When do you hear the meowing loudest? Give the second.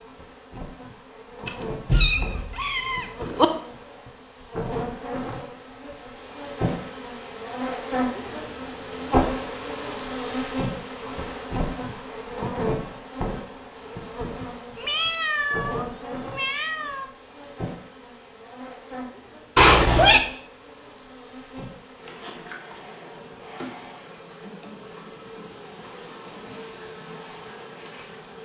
20 s.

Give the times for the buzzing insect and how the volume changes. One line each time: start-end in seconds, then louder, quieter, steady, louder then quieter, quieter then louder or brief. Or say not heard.
0.0-28.4 louder then quieter.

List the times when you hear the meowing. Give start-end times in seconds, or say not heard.
1.4-3.5, 14.8-17.1, 19.6-20.2.